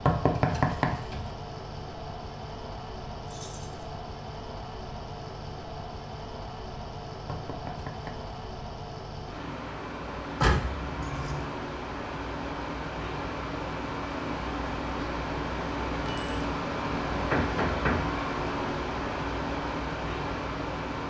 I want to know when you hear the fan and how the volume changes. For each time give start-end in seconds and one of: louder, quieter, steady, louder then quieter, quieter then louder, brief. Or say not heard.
0.0-21.0 louder.